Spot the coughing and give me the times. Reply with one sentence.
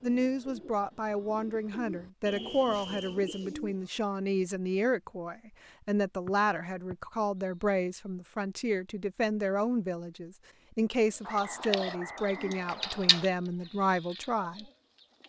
The coughing can't be heard in this clip.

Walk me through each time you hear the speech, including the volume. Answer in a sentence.
You can hear the speech from 0.0 to 14.7 s, at a steady volume.